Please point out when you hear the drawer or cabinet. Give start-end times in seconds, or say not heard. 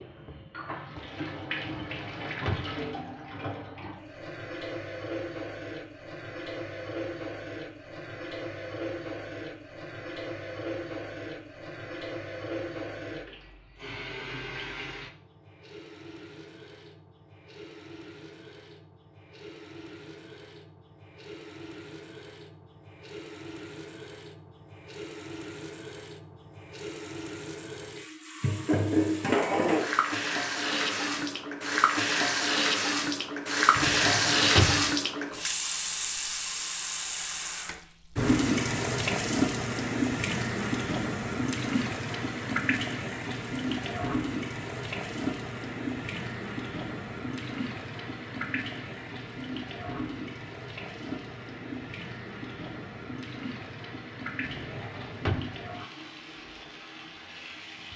1.6-2.8, 33.8-34.9, 54.5-55.5.